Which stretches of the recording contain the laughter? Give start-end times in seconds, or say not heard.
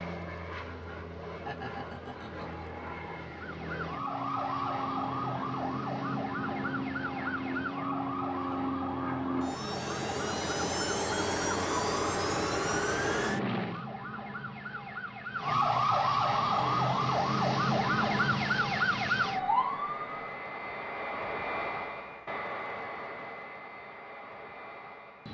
1.4-2.6.